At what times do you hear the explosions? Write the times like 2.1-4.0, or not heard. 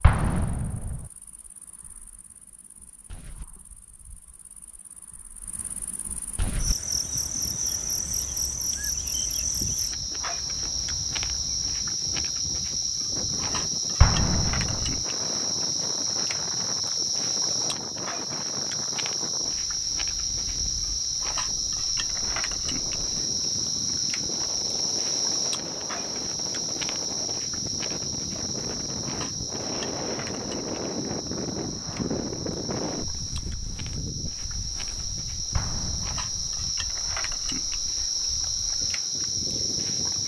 0.0-1.1, 14.0-15.0, 35.5-36.5.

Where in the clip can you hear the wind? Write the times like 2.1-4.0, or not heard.
6.5-40.2.